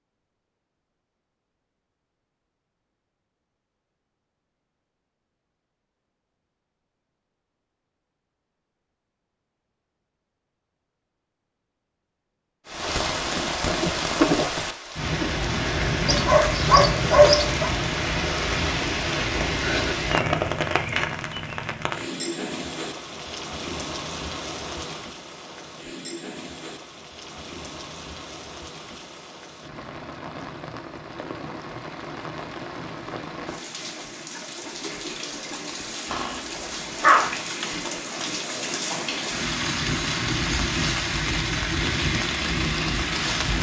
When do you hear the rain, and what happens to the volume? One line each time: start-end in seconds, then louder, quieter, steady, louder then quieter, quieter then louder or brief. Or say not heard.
12.7-43.5 quieter then louder.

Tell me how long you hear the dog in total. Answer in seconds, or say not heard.
3 s.